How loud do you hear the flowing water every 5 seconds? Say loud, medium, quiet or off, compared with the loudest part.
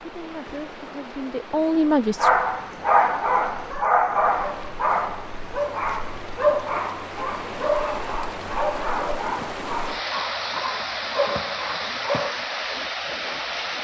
medium, medium, loud.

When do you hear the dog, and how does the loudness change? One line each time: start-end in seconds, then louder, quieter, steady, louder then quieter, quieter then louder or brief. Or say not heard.
2.1-12.3 quieter.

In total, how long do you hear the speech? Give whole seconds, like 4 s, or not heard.
2 s.